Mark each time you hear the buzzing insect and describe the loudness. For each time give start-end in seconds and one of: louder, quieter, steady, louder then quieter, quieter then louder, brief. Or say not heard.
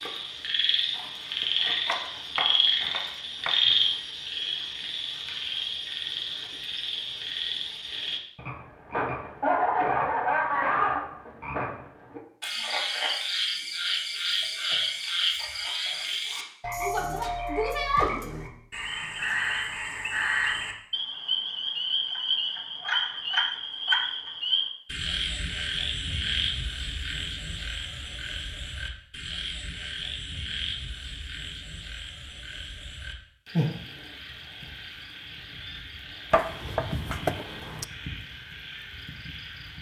not heard.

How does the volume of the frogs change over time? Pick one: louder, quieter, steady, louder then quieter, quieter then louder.
quieter.